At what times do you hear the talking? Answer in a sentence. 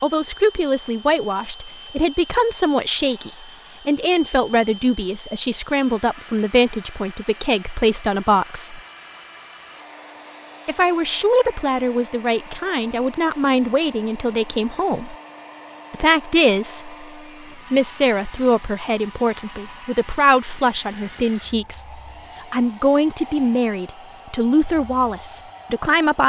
You can hear the talking from 0.0 to 8.8 s, from 10.7 to 15.2 s, from 15.9 to 17.1 s and from 17.7 to 26.2 s.